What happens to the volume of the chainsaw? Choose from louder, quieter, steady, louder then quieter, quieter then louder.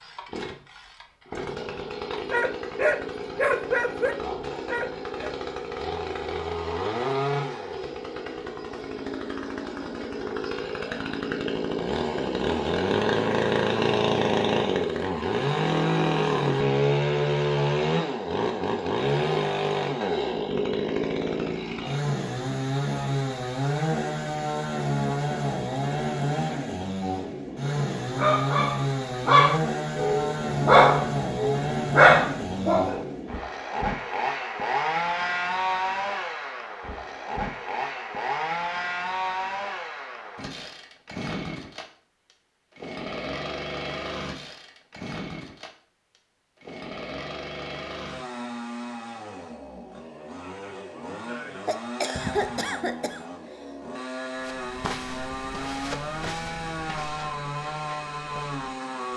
louder then quieter.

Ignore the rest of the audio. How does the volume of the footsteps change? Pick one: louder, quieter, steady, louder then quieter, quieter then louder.
quieter.